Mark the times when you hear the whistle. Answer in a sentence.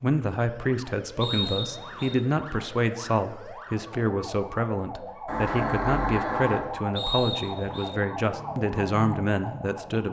The whistle can be heard from 1.2 to 2.1 s and from 7.0 to 7.9 s.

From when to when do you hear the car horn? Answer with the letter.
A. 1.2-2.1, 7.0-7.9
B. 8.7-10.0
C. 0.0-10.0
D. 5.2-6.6
D.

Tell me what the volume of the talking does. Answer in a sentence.
The loudness of the talking stays about the same.